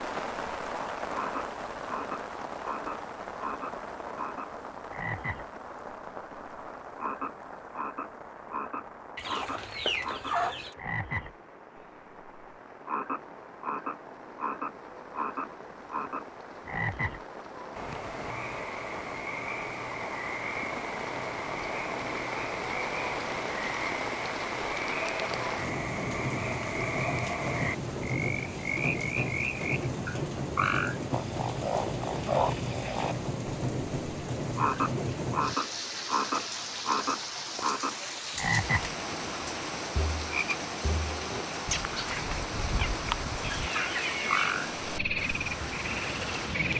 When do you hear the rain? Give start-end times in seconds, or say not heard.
0.0-46.7.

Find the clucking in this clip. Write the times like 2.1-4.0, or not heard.
9.2-10.8, 43.4-45.3.